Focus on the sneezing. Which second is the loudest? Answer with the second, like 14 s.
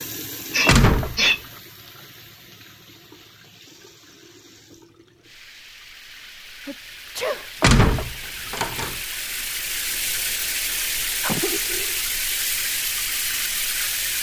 1 s.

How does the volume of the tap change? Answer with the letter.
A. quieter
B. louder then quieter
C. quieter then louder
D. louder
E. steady
C.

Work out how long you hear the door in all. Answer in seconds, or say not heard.
2 s.